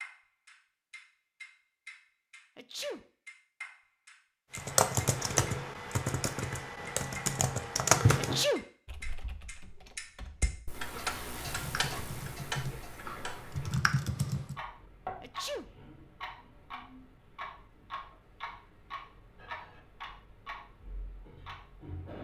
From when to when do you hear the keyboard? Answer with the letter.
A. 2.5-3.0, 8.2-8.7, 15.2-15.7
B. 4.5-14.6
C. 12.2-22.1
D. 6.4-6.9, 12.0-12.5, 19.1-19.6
B.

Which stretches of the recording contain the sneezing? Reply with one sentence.
You can hear the sneezing from 2.5 to 3.0 s, from 8.2 to 8.7 s and from 15.2 to 15.7 s.